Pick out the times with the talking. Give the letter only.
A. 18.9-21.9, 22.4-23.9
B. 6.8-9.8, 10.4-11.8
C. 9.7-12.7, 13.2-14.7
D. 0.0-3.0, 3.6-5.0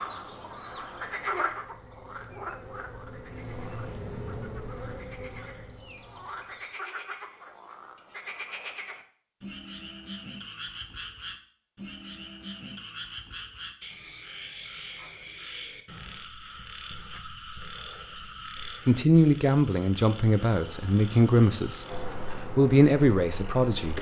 A.